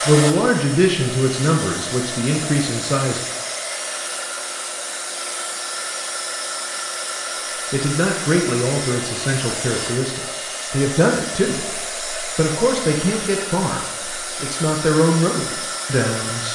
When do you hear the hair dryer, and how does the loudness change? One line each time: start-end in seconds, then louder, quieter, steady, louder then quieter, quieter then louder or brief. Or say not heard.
0.0-16.5 steady.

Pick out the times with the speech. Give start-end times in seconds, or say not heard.
0.1-3.2, 7.7-16.5.